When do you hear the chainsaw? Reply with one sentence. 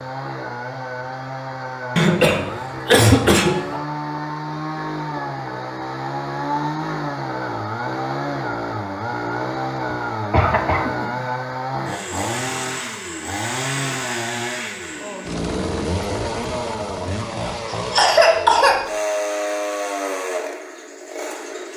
You can hear the chainsaw from 0.0 to 21.7 s.